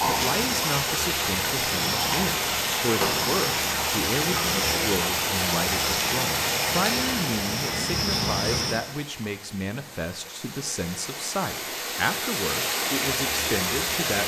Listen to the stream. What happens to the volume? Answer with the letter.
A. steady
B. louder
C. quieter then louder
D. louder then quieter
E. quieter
C.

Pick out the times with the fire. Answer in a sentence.
The fire can't be heard in this clip.